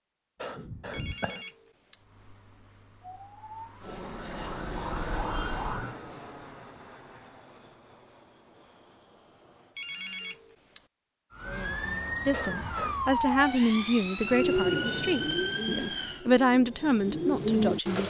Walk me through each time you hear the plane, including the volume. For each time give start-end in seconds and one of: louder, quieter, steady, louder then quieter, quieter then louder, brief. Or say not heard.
3.8-9.8 quieter.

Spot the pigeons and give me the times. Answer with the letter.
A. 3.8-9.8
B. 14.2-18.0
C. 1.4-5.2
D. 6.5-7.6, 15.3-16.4
B.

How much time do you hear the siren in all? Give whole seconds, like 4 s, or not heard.
9 s.